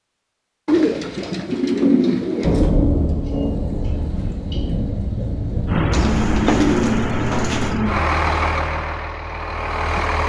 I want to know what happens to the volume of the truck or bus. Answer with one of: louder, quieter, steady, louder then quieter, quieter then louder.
quieter.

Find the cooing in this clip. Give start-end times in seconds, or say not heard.
0.7-2.7, 5.9-7.8.